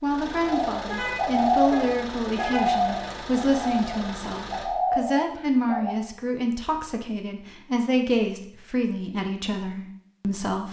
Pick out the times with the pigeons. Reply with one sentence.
The pigeons can be heard from 0.5 to 6.0 s.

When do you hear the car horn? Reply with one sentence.
You can hear the car horn from 0.8 to 3.6 s.